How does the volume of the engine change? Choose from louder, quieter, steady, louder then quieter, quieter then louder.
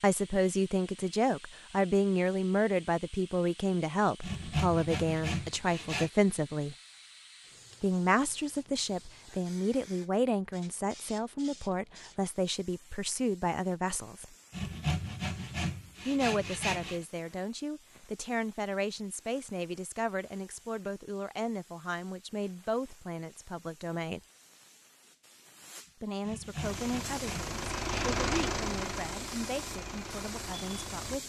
louder then quieter.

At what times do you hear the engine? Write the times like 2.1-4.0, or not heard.
26.6-31.2.